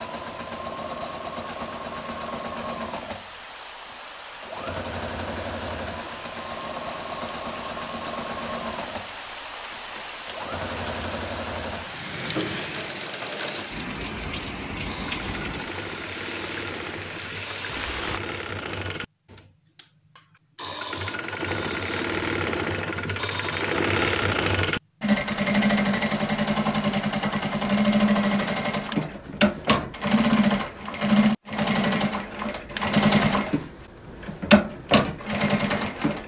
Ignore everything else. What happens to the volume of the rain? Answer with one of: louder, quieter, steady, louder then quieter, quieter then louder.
louder.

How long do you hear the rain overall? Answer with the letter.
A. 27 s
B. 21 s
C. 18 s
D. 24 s
C.